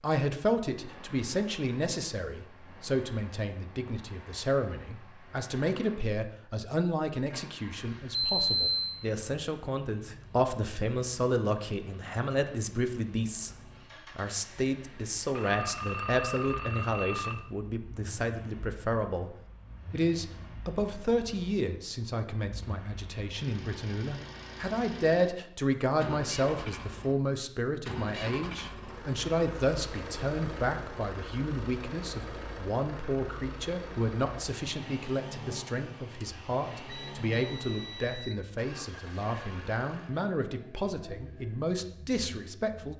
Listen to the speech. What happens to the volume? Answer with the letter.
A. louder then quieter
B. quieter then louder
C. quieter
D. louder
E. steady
E.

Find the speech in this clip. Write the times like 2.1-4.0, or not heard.
0.0-13.6, 14.2-42.9.